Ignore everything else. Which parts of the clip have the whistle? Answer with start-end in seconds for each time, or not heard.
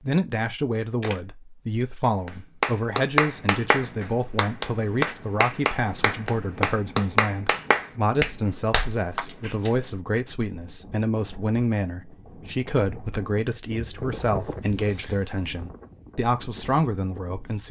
not heard.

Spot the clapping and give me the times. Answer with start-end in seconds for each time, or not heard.
2.0-9.6.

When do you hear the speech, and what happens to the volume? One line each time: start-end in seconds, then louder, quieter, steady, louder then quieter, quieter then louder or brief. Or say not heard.
0.0-17.6 steady.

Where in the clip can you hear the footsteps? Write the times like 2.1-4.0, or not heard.
not heard.